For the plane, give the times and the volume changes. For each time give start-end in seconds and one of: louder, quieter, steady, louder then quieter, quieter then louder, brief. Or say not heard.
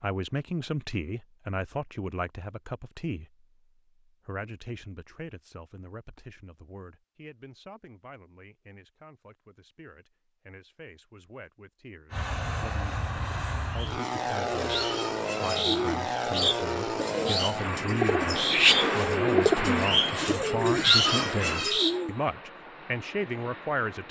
12.1-24.0 quieter.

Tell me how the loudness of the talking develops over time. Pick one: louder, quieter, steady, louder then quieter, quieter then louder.
quieter then louder.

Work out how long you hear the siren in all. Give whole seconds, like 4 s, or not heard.
not heard.